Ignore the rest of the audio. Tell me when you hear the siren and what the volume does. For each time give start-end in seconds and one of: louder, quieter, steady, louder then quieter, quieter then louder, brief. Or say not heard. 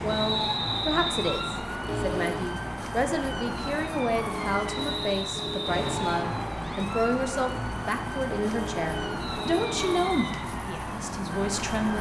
0.0-11.9 steady.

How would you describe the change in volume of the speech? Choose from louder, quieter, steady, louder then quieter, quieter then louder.
steady.